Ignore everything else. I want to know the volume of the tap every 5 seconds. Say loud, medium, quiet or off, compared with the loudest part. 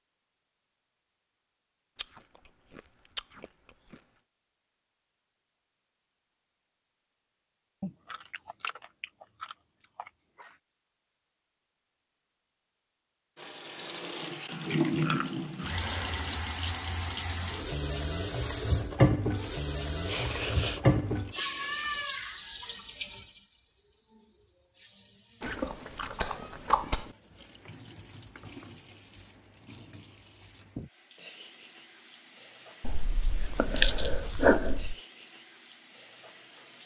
off, off, loud, loud, loud, quiet, quiet, quiet.